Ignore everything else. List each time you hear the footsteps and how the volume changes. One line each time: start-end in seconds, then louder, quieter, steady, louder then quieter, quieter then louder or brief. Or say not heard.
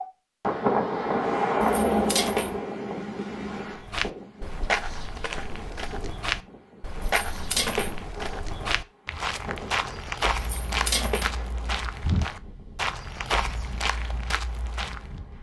3.6-15.2 steady.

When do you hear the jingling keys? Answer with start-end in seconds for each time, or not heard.
1.6-2.6, 7.0-8.0, 10.3-11.3.